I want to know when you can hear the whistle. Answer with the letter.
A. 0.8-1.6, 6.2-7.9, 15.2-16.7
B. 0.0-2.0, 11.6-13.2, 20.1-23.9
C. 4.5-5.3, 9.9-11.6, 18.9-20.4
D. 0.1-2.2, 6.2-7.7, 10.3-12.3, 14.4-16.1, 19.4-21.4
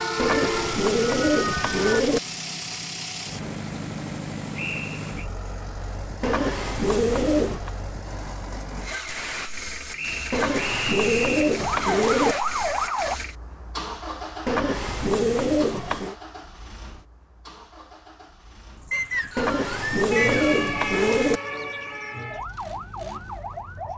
C.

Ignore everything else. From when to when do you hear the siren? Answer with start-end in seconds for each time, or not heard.
0.0-2.0, 11.6-13.2, 20.1-23.9.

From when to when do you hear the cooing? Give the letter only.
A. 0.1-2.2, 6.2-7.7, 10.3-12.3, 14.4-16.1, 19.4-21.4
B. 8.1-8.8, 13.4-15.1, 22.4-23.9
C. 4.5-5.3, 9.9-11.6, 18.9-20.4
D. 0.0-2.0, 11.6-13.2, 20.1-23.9
A.